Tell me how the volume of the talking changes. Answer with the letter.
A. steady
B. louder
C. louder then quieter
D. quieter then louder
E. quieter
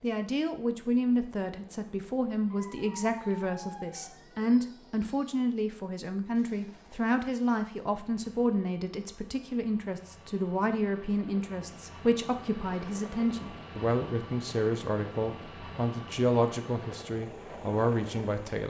A.